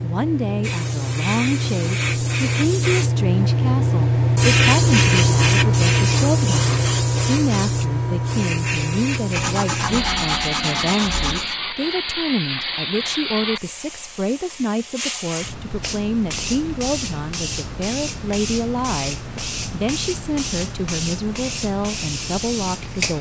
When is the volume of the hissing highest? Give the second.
5 s.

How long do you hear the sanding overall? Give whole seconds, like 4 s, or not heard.
2 s.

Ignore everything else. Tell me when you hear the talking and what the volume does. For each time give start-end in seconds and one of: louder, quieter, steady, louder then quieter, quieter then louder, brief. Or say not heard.
0.0-23.1 steady.